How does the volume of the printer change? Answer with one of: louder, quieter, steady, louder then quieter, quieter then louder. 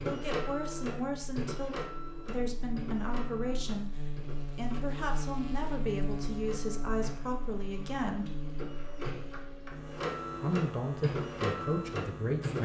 quieter then louder.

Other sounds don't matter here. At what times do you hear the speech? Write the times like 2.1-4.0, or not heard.
0.1-3.9, 4.5-8.2, 10.4-12.6.